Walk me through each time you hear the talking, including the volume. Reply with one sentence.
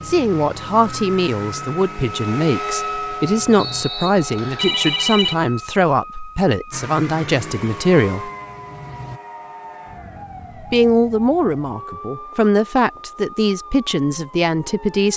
The talking can be heard from 0.1 to 8.3 s, at a steady volume; and from 10.6 to 15.1 s, at a steady volume.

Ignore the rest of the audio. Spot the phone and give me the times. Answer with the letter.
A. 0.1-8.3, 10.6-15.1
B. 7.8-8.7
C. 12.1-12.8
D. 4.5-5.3
D.